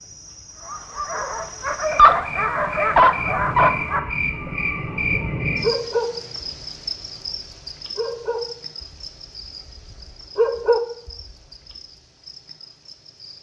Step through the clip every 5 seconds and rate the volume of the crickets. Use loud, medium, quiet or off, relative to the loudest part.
loud, loud, quiet.